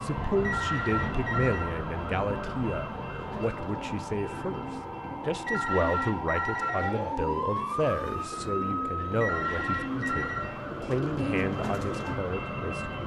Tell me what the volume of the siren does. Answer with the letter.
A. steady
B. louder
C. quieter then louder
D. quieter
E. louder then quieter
E.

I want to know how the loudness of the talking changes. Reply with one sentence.
The loudness of the talking stays about the same.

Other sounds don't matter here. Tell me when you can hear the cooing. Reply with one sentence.
The cooing can be heard from 3.1 to 12.2 s.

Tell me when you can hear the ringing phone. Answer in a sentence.
The ringing phone can be heard from 0.2 to 1.8 s, from 5.5 to 7.2 s and from 8.9 to 10.6 s.